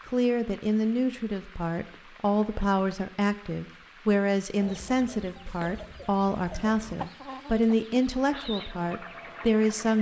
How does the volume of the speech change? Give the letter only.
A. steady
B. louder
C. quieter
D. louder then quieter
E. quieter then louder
A.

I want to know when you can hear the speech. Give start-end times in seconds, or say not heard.
0.1-9.9.